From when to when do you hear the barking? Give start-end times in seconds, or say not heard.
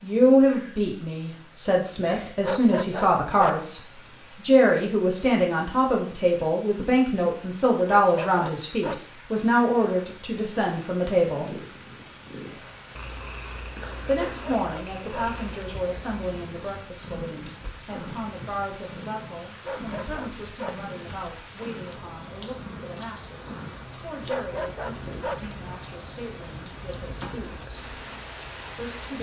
2.4-3.6, 7.8-9.1, 14.2-15.2, 19.6-20.9, 24.2-25.5.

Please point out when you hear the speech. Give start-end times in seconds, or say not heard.
0.0-3.8, 4.4-11.5, 14.1-27.9, 28.7-29.1.